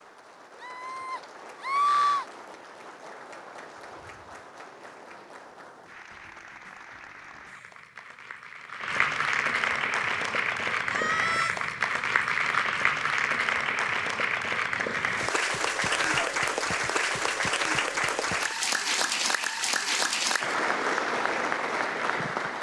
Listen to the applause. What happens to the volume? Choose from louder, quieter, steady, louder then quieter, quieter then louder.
louder.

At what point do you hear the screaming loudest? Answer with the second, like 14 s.
2 s.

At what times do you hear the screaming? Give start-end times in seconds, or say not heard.
0.6-2.2, 10.9-11.5, 15.8-16.3.